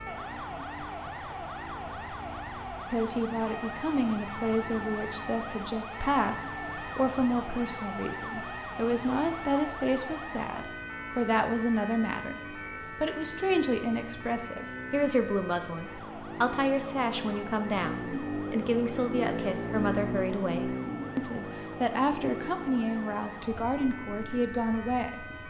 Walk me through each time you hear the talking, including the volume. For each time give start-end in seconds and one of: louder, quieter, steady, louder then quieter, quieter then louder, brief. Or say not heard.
2.9-25.2 steady.